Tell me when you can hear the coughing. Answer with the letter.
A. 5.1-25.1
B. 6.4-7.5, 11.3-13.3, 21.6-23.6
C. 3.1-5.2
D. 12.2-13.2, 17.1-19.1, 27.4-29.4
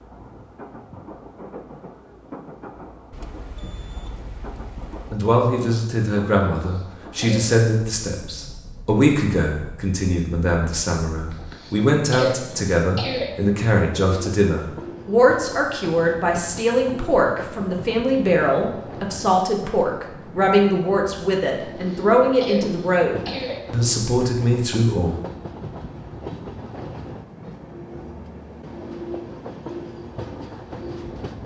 B.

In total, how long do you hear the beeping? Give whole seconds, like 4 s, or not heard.
2 s.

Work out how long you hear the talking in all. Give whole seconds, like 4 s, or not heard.
20 s.